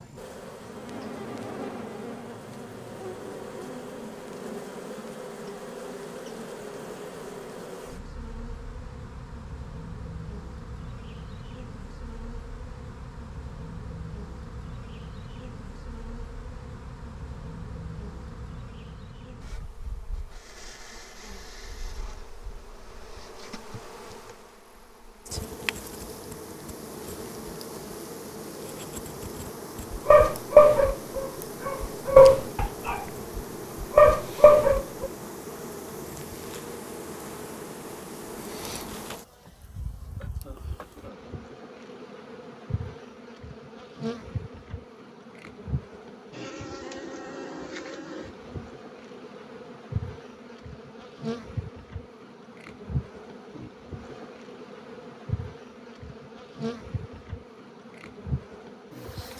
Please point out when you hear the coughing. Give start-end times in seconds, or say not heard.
40.2-41.2.